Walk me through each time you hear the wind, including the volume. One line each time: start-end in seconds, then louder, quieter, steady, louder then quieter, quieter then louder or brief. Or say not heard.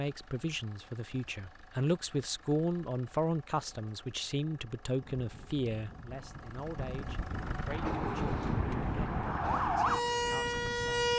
5.0-11.1 louder then quieter.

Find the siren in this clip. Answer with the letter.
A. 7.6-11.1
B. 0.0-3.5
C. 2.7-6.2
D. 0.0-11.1
A.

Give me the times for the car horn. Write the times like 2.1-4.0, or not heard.
not heard.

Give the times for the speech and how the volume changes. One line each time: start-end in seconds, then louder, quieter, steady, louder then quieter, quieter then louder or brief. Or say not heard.
0.0-11.1 quieter.